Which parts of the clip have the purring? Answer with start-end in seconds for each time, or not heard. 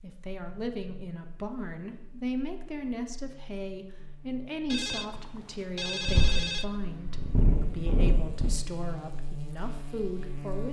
6.0-8.5.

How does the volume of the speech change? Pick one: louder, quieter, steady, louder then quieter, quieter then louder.
steady.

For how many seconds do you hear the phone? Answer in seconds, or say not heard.
2 s.